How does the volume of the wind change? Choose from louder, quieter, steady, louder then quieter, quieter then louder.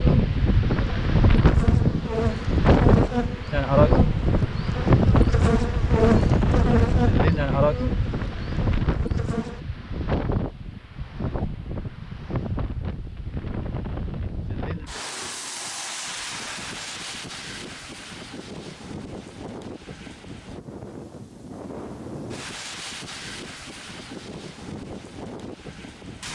quieter.